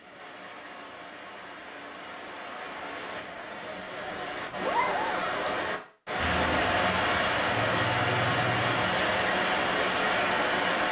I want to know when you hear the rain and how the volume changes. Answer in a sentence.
The rain can be heard from 0.0 to 10.8 s, getting louder.